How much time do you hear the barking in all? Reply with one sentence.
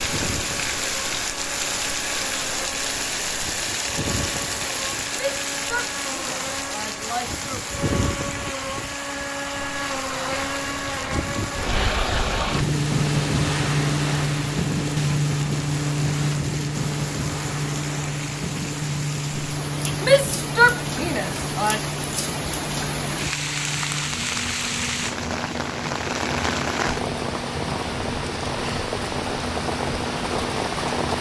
You can't hear the barking here.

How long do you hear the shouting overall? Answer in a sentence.
The shouting can be heard for 4 seconds in total.